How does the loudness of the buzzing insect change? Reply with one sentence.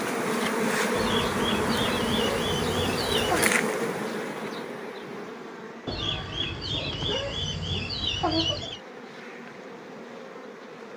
The volume of the buzzing insect goes down.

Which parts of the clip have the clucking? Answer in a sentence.
You can hear the clucking from 0.9 to 3.5 s and from 5.8 to 8.8 s.